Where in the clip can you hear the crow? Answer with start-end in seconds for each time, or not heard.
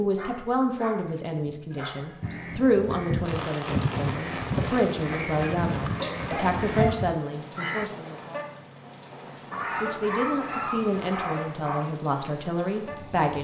2.2-7.9.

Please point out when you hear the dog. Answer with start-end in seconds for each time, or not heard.
0.1-2.2, 5.1-7.0, 9.5-11.8.